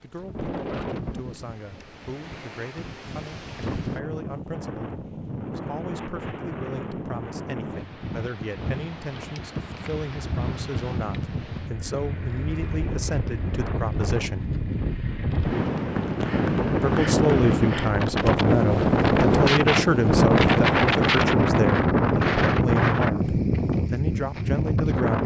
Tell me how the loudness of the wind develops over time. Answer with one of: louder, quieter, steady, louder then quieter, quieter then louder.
louder.